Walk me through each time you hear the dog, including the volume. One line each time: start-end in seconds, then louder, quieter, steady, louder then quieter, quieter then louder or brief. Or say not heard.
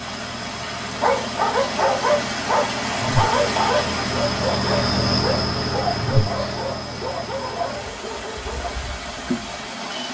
0.8-8.8 quieter.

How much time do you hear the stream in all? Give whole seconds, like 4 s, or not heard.
10 s.